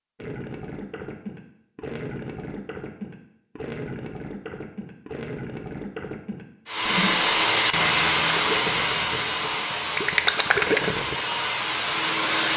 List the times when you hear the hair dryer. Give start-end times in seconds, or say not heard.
6.7-12.5.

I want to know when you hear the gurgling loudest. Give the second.
11 s.